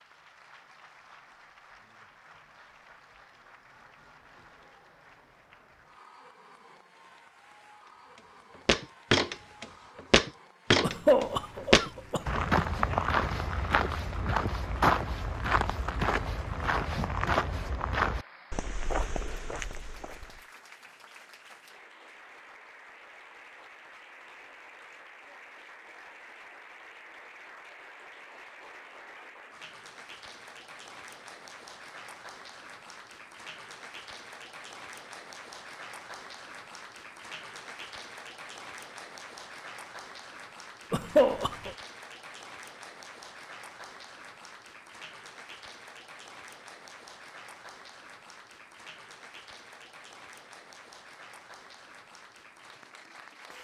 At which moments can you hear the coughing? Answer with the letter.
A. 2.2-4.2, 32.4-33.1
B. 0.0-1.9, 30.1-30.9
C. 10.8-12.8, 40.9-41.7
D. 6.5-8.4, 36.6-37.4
C.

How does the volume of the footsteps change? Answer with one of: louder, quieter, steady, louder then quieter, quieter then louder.
quieter.